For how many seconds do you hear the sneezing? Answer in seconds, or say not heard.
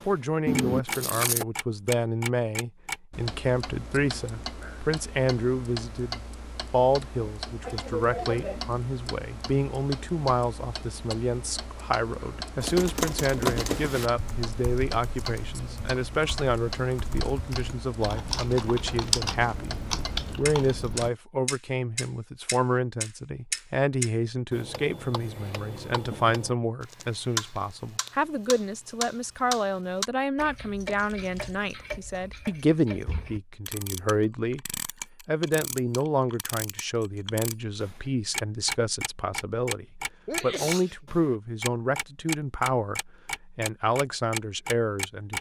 2 s.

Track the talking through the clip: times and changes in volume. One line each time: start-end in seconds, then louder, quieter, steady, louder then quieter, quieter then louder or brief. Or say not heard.
0.1-45.3 steady.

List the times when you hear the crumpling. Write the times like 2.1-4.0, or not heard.
0.5-1.4, 18.3-19.6, 30.9-31.6.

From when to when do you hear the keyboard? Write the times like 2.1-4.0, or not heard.
12.6-21.1.